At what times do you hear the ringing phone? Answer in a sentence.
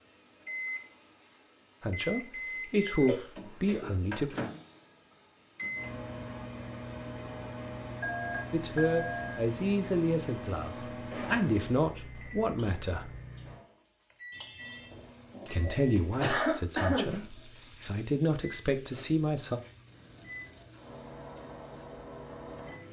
The ringing phone can be heard from 8.0 to 9.3 s and from 14.3 to 16.1 s.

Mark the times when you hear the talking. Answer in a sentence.
You can hear the talking from 1.8 to 4.3 s, from 8.5 to 13.1 s and from 15.4 to 19.6 s.